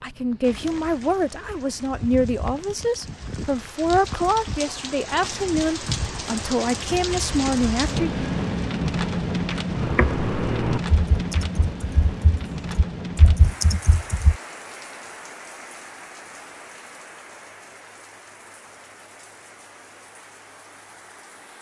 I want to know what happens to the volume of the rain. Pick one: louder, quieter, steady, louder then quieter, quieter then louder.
louder then quieter.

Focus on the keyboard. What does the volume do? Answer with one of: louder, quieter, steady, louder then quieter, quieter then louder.
quieter then louder.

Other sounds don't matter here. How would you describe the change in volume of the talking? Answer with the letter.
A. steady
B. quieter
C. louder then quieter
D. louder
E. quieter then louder
A.